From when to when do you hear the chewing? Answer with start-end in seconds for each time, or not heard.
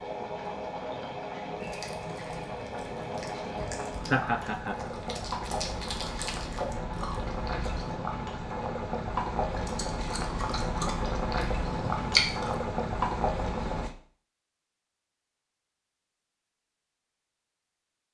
1.6-8.0, 9.5-12.7.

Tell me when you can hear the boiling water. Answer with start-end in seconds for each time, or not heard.
0.0-13.9.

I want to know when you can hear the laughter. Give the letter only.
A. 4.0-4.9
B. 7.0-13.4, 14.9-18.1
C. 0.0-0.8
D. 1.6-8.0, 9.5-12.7
A.